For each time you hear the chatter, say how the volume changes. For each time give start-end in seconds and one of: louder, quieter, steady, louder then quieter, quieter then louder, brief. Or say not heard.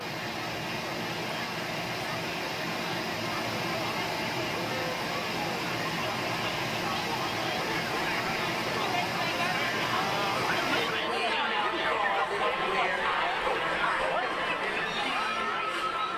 0.0-16.1 louder.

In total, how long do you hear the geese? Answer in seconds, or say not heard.
not heard.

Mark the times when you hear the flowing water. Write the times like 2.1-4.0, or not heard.
0.0-11.1.